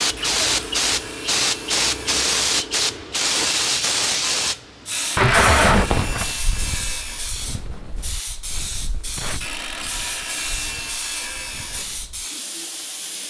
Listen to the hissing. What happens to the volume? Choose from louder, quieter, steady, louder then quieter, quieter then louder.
quieter.